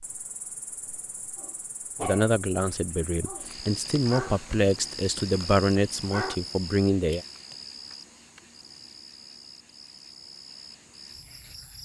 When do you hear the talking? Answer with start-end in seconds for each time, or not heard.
2.0-7.2.